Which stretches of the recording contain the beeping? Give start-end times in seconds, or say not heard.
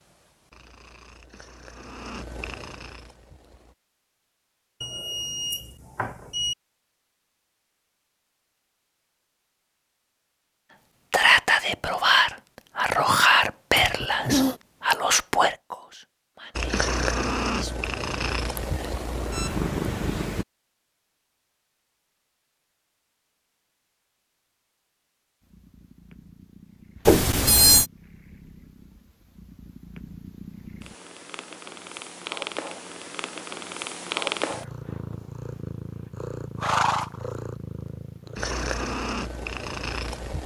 4.8-6.5, 18.6-19.6, 27.1-27.9.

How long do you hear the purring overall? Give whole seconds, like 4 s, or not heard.
23 s.